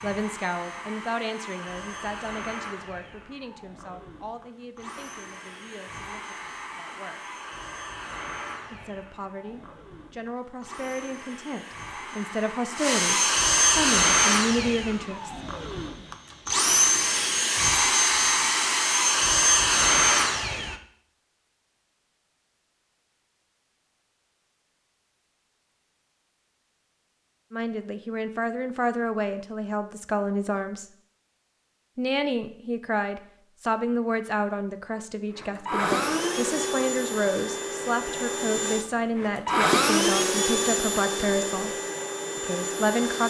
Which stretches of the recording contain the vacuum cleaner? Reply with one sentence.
You can hear the vacuum cleaner from 0.0 to 20.8 s and from 35.4 to 43.2 s.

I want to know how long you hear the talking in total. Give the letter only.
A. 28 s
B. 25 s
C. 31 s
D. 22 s
A.